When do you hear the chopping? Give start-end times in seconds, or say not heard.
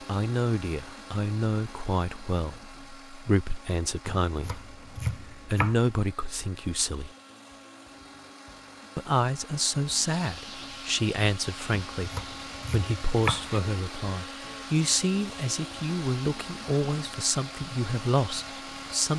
4.0-5.8, 11.9-13.6.